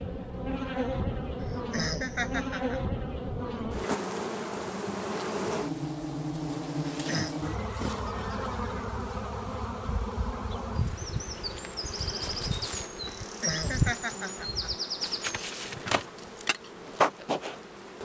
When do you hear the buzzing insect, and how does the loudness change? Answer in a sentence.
You can hear the buzzing insect from 0.0 to 18.0 s, at a steady volume.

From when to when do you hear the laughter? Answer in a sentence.
You can hear the laughter from 1.4 to 2.8 s, from 6.9 to 7.3 s and from 13.2 to 14.8 s.